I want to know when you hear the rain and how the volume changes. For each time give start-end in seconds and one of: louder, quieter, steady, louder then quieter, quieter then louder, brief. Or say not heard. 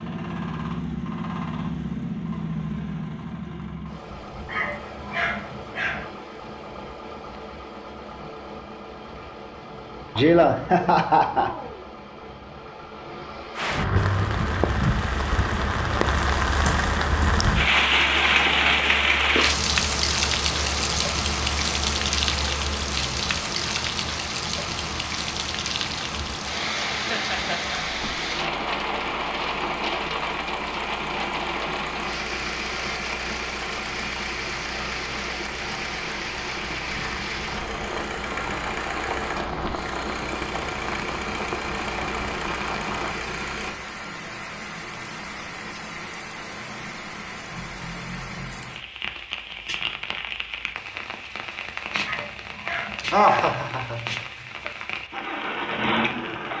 13.6-56.5 quieter.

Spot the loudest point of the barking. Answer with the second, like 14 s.
5 s.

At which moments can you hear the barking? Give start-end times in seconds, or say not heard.
4.5-6.1, 52.0-53.5.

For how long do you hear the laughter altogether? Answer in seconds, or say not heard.
4 s.